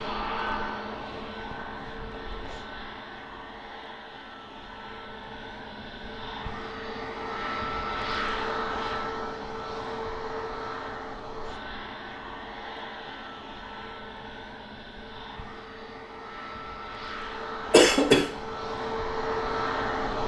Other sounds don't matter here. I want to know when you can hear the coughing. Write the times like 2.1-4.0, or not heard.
17.7-18.2.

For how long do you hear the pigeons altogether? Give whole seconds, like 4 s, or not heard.
not heard.